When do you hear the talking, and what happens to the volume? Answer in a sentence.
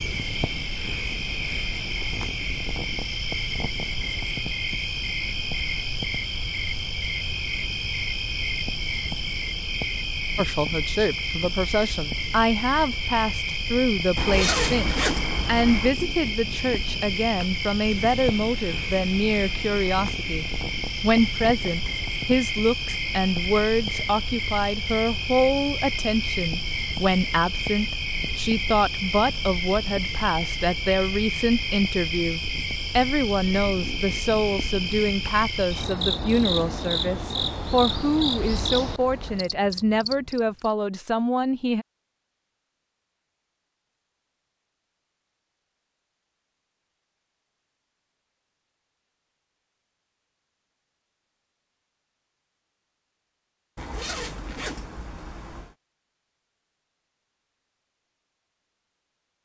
You can hear the talking from 10.3 to 41.9 s, at a steady volume.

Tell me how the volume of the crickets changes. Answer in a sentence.
The loudness of the crickets stays about the same.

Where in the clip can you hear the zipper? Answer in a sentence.
You can hear the zipper from 14.2 to 15.9 s and from 53.8 to 55.8 s.